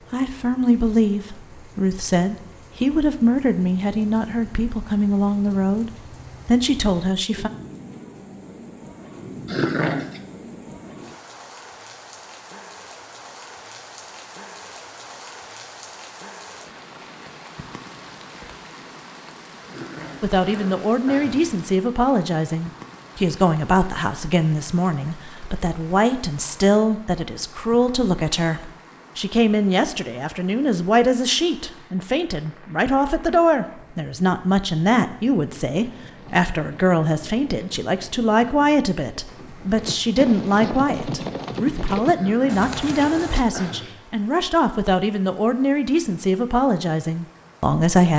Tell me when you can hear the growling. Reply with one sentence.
The growling can be heard from 9.4 to 10.2 s, from 19.6 to 21.4 s and from 42.1 to 44.0 s.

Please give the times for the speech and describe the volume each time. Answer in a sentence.
You can hear the speech from 0.1 to 7.5 s, at a steady volume; and from 20.2 to 48.1 s, at a steady volume.